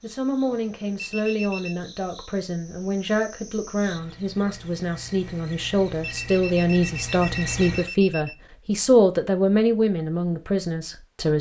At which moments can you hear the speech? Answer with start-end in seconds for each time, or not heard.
0.0-11.3.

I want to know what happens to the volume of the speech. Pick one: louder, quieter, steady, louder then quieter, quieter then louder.
louder.